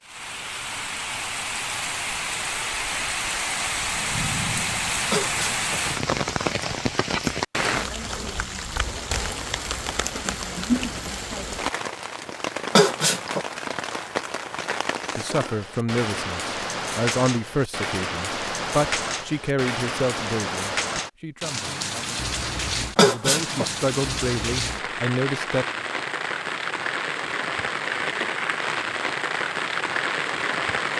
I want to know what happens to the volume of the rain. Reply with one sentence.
The volume of the rain stays about the same.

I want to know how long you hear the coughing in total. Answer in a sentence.
You can hear the coughing for 2 seconds altogether.